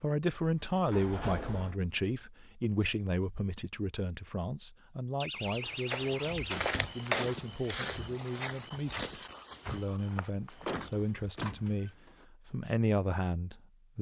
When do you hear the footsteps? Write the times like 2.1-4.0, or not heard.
5.4-11.5.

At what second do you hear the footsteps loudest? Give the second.
7 s.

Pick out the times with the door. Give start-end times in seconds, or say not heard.
0.4-1.8, 5.2-7.0, 10.3-12.2.